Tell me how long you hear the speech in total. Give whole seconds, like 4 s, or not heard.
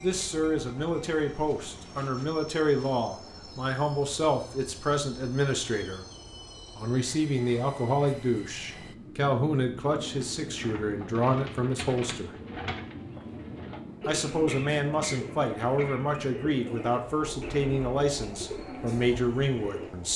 18 s.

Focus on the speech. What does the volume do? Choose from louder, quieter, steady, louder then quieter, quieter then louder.
steady.